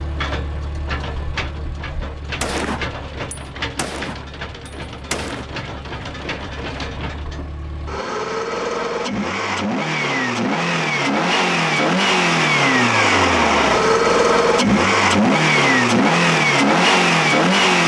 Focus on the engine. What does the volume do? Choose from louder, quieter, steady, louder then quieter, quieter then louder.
louder.